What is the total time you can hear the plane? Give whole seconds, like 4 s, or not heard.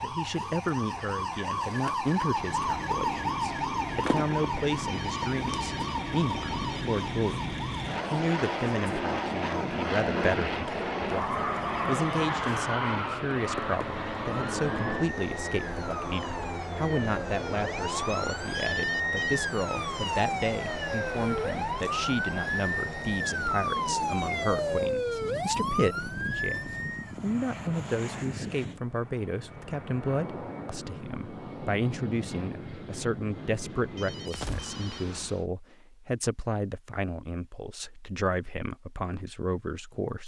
33 s.